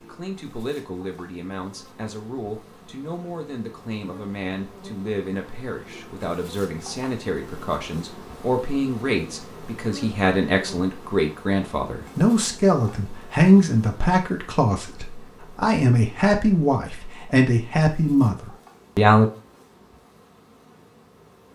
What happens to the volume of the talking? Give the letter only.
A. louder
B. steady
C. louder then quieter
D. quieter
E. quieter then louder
A.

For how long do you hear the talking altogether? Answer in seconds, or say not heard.
19 s.